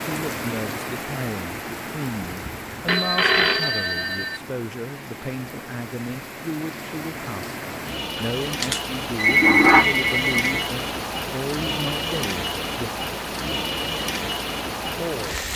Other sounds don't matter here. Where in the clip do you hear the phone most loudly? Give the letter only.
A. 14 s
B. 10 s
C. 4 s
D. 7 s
B.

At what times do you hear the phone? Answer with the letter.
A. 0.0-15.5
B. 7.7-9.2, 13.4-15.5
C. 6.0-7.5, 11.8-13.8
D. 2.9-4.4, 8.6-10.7
D.